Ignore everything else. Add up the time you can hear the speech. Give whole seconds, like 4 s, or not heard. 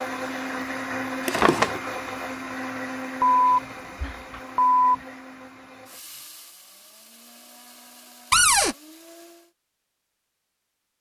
not heard.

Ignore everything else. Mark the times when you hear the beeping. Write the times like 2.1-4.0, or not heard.
3.2-5.0.